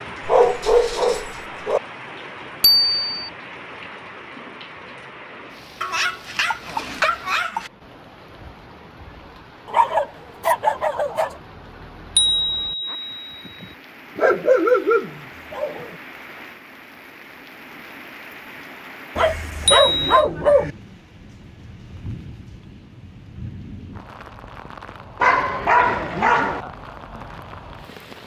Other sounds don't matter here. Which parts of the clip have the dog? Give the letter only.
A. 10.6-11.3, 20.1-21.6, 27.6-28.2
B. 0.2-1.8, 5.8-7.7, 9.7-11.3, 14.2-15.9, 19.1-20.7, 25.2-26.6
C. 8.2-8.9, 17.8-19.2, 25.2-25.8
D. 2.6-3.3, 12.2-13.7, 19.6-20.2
B.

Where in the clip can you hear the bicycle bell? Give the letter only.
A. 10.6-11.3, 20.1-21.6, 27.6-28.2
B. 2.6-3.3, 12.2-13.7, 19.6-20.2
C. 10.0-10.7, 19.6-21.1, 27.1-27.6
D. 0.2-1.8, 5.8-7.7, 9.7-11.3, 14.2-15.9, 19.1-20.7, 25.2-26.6
B.